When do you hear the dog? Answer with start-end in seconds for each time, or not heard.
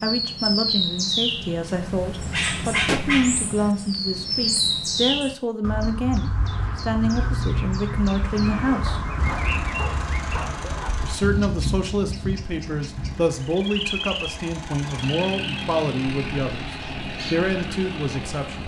8.7-10.9.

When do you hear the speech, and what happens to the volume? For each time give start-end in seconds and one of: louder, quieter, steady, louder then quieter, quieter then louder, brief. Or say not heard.
0.0-9.0 steady
11.0-18.6 steady.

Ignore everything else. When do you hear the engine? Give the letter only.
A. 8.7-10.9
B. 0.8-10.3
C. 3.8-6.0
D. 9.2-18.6
D.